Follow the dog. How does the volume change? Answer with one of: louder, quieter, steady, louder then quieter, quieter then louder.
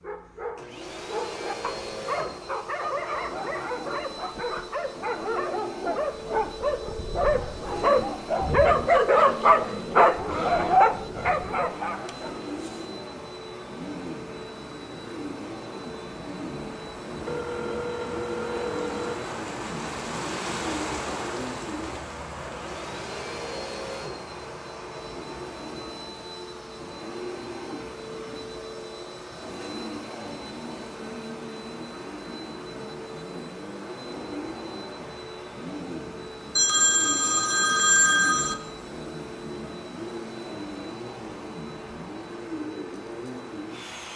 louder.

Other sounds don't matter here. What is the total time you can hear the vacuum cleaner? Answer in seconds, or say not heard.
44 s.